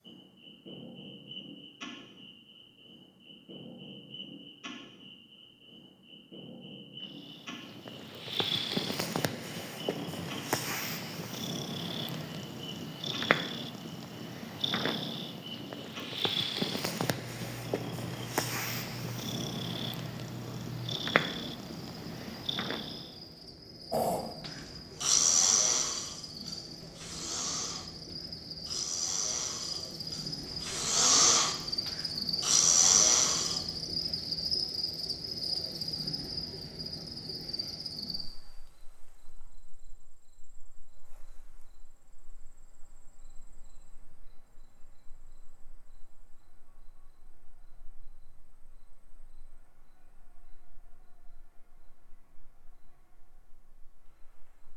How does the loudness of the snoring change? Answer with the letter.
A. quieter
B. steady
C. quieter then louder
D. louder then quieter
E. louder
C.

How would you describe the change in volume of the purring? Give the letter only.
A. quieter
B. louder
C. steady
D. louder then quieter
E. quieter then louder
C.